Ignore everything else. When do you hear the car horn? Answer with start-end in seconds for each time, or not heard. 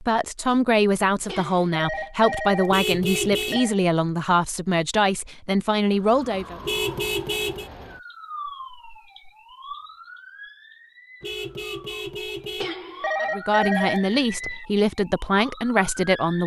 2.7-3.6, 6.6-7.7, 11.2-12.7.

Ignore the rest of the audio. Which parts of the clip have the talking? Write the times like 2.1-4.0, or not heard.
0.0-6.6, 13.2-16.4.